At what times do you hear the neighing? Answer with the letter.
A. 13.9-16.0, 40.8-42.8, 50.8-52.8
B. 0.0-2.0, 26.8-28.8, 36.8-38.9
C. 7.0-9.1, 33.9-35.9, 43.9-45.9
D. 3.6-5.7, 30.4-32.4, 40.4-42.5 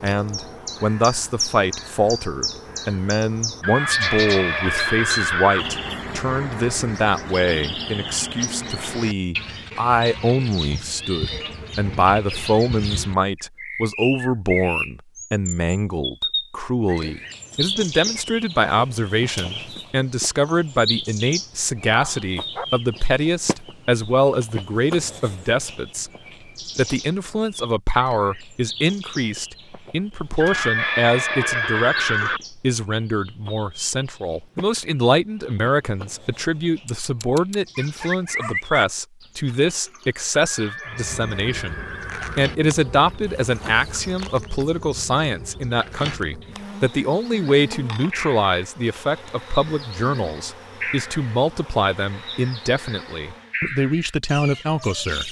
D.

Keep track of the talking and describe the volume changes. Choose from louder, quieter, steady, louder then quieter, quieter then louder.
steady.